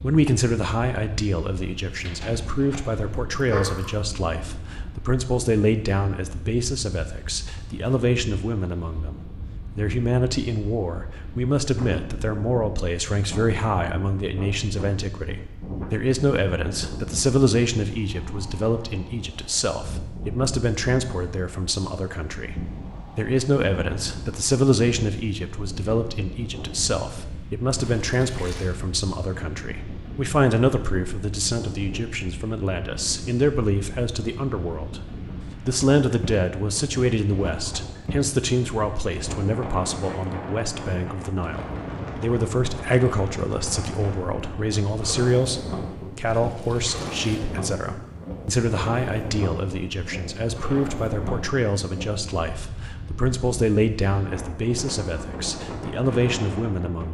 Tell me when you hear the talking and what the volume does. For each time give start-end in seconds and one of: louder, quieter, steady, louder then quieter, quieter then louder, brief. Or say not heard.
0.0-57.0 steady.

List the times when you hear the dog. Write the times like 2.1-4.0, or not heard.
2.0-3.6.